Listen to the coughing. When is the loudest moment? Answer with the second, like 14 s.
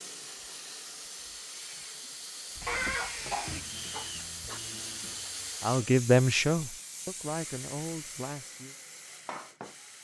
3 s.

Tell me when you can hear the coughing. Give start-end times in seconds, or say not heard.
2.6-4.6.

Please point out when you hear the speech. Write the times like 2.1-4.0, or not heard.
5.6-8.8.